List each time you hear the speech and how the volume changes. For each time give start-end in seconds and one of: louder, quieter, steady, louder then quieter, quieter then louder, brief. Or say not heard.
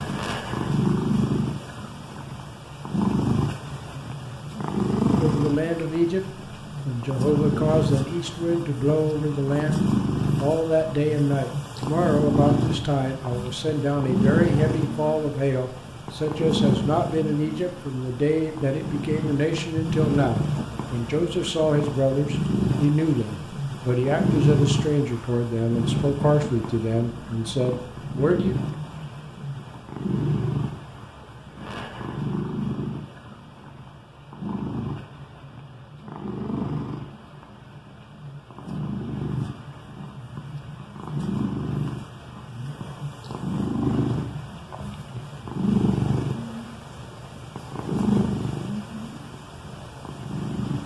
5.2-6.2 brief
6.8-28.6 steady.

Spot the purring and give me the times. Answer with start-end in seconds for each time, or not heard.
0.0-50.8.